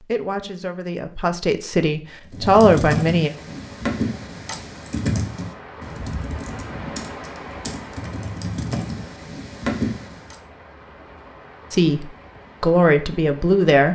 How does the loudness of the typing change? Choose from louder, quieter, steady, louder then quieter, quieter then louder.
quieter then louder.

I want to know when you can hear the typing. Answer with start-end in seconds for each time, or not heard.
2.1-10.3.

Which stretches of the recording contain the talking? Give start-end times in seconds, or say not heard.
0.1-3.3, 11.7-13.8.